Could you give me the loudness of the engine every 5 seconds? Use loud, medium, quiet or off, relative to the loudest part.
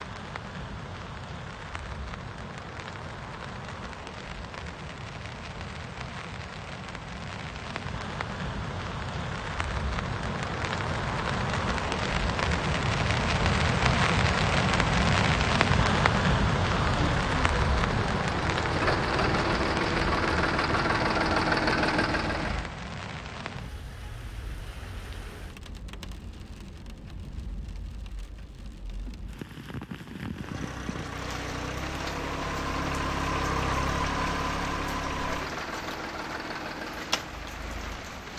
off, off, off, loud, loud, off, medium, medium.